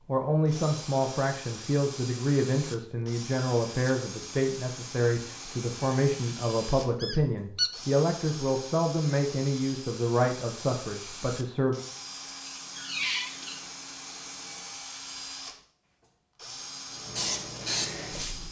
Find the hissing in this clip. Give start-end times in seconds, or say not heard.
16.9-18.4.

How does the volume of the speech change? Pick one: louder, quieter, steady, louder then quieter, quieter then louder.
steady.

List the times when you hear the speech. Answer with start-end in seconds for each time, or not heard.
0.1-11.8.